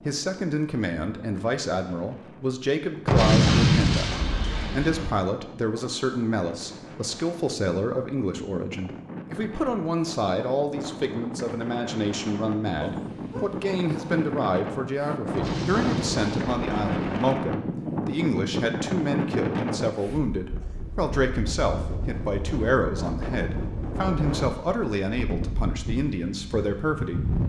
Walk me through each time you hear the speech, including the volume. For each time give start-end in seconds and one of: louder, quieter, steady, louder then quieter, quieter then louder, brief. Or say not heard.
0.1-27.3 steady.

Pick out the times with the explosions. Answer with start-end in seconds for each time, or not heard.
3.0-5.1, 15.3-17.3.